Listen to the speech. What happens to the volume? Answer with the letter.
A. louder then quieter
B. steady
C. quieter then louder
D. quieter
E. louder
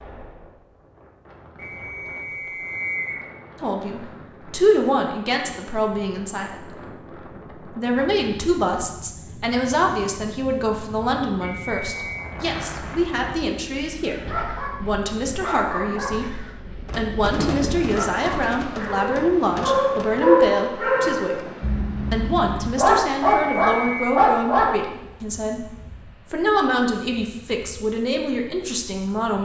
B.